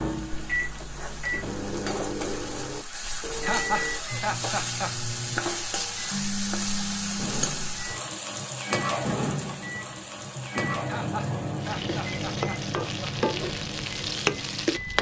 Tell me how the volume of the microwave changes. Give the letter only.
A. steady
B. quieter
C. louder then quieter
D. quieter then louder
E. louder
A.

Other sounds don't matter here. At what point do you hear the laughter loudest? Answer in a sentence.
The loudest moment of the laughter is at 4 seconds.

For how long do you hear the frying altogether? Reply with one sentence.
You can hear the frying for 15 seconds altogether.